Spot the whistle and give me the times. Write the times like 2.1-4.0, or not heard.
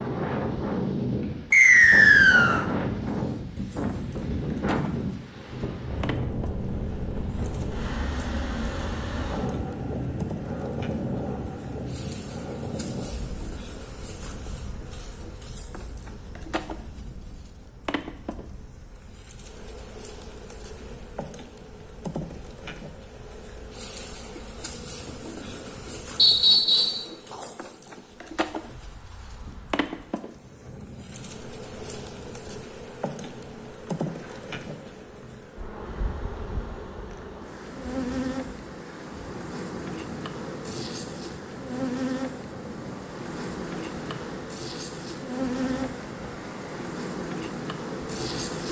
1.5-2.6, 26.1-27.0.